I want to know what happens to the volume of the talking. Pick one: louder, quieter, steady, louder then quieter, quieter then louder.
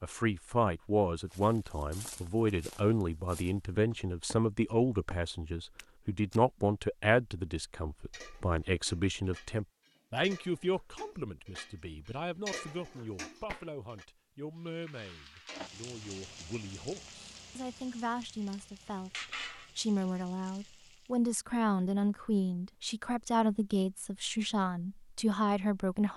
quieter then louder.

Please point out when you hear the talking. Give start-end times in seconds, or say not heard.
0.0-26.1.